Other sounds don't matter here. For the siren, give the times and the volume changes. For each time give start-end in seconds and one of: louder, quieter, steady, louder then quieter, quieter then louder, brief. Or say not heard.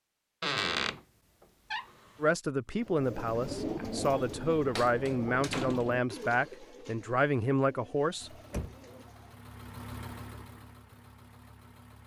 not heard.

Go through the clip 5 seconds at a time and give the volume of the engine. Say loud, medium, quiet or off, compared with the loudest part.
off, loud, loud.